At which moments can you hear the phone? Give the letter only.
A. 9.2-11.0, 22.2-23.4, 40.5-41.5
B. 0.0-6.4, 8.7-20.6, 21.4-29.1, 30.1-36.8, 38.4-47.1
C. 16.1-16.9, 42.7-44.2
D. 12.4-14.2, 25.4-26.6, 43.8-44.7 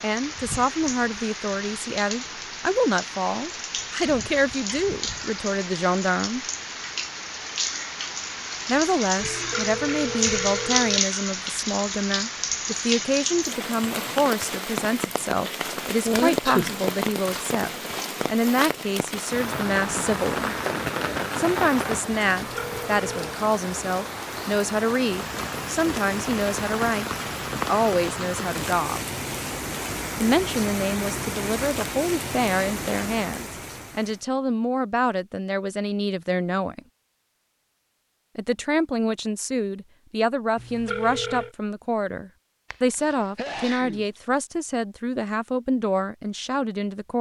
A.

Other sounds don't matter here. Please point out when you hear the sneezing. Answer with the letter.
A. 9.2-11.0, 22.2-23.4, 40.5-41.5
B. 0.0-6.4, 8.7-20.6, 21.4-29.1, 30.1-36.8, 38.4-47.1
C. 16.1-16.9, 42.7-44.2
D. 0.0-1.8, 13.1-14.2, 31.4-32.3
C.